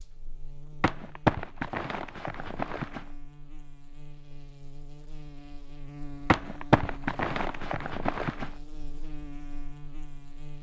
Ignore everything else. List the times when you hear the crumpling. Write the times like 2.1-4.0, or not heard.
0.8-3.0, 6.2-8.5.